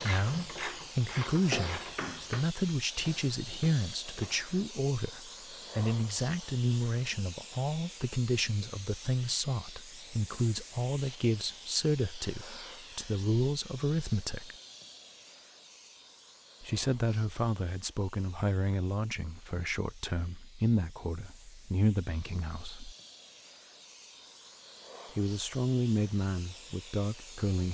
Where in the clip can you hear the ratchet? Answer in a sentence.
You can hear the ratchet from 0.0 to 4.5 s.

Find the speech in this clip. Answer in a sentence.
The speech can be heard from 0.0 to 14.6 s, from 16.6 to 22.9 s and from 25.1 to 27.6 s.